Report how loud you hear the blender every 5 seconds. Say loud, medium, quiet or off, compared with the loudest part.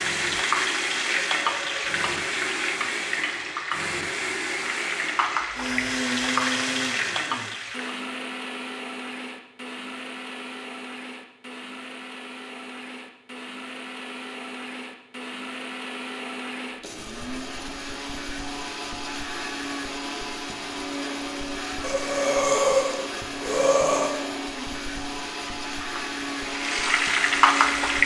loud, loud, medium, loud, loud, loud.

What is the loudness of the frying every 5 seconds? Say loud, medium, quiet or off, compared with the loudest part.
medium, medium, off, off, off, loud.